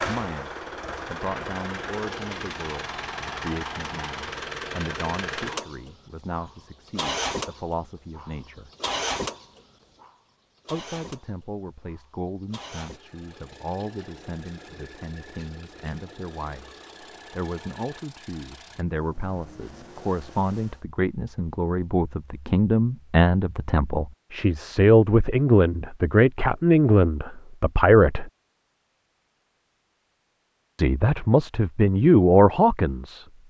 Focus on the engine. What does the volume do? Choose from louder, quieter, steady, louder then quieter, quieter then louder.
quieter.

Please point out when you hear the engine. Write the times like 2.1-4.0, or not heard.
0.0-20.9.